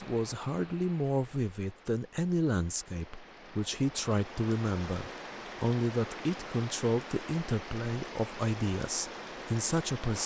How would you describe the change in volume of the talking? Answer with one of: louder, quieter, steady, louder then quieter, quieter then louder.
steady.